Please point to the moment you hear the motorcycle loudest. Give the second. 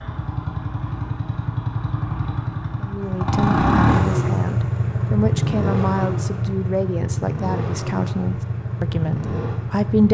4 s.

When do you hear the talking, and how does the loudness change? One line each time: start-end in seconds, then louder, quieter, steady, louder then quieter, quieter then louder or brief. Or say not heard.
2.8-10.0 steady.